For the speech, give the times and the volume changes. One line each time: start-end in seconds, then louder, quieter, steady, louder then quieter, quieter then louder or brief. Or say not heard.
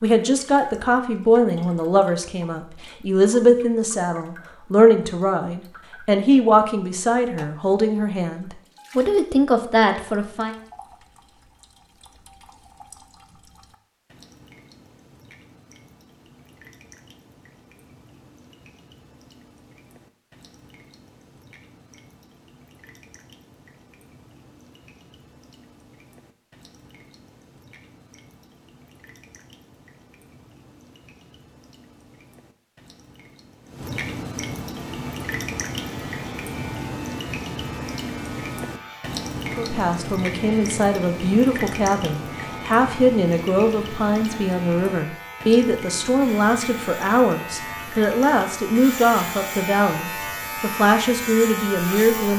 0.0-10.6 steady
39.5-52.3 steady.